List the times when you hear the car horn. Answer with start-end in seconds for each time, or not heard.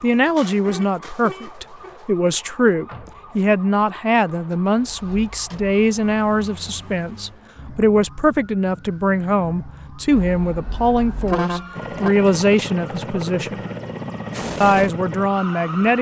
0.6-1.9, 10.1-12.1.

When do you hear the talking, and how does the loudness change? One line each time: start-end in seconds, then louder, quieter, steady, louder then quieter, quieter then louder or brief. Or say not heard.
0.0-13.6 steady
14.6-15.9 brief.